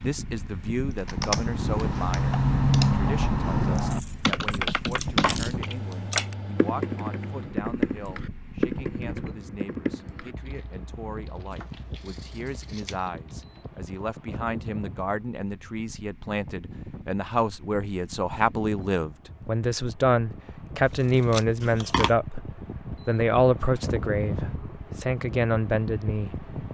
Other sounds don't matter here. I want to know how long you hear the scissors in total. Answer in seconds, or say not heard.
5 s.